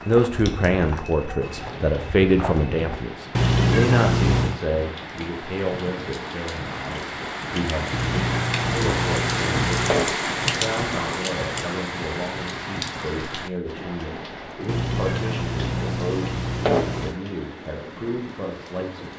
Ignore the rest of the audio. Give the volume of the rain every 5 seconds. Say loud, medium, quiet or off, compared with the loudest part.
medium, loud, loud, medium.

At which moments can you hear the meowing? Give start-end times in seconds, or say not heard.
3.4-4.6, 7.9-10.2, 14.7-17.1.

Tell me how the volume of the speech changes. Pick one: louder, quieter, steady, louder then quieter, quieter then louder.
quieter.